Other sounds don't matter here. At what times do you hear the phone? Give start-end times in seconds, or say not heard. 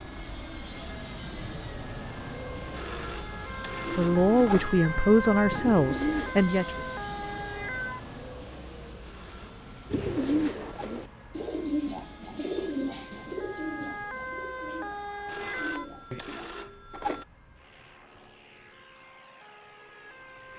2.7-4.7, 9.0-11.0, 15.2-17.2.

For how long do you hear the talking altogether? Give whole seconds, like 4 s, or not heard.
3 s.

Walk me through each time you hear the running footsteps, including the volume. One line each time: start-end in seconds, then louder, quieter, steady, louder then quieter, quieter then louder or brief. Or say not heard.
not heard.